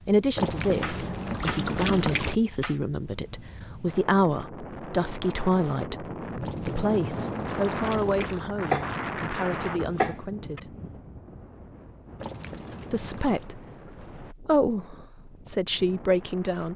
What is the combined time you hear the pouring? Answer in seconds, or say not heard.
5 s.